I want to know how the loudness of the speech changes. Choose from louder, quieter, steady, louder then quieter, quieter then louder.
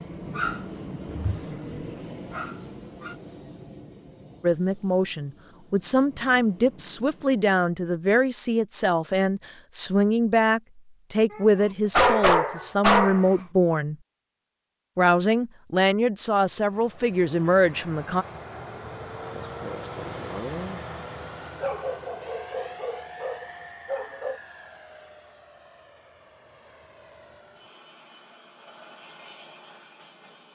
steady.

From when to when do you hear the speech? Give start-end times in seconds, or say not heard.
4.4-13.9, 14.9-18.2.